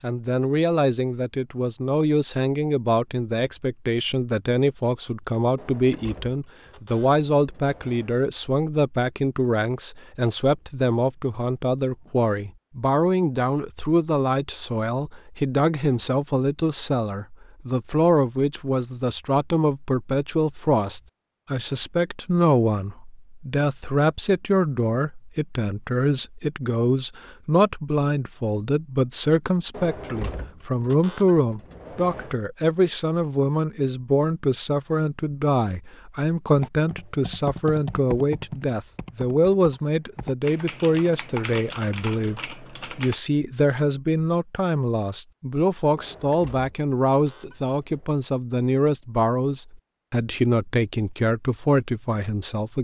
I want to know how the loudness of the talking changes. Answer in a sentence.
The loudness of the talking stays about the same.